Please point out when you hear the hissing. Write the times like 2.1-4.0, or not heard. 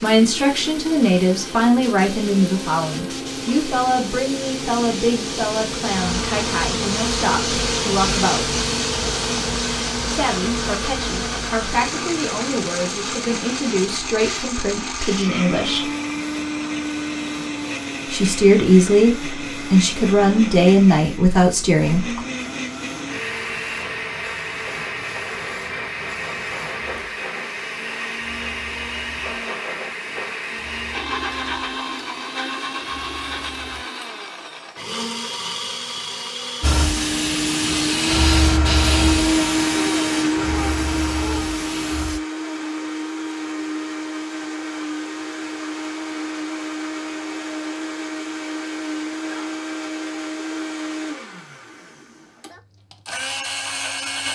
0.0-33.9, 36.6-42.2.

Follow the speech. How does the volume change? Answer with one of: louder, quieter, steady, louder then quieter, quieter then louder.
quieter then louder.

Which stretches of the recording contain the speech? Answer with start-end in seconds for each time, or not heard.
0.0-8.5, 10.1-15.9, 18.1-22.2.